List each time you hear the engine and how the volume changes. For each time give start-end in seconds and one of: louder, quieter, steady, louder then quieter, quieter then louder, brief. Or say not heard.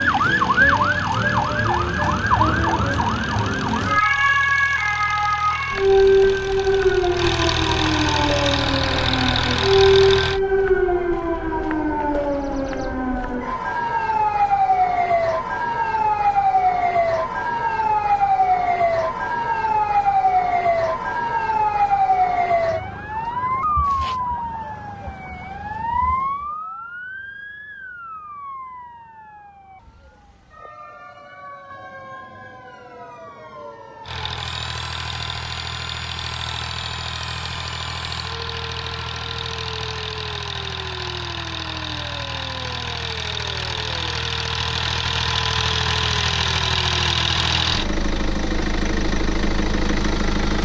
0.0-10.4 louder
34.0-50.6 louder.